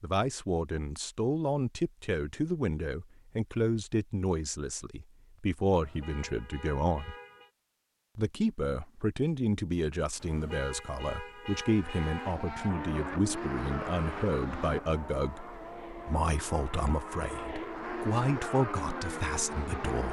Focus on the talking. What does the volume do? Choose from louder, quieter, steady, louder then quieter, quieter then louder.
steady.